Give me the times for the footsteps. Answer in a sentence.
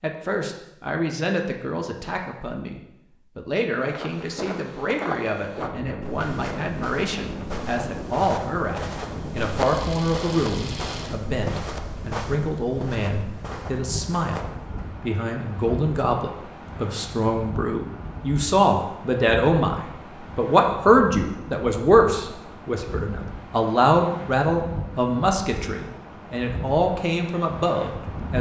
The footsteps can be heard from 3.8 to 14.9 s.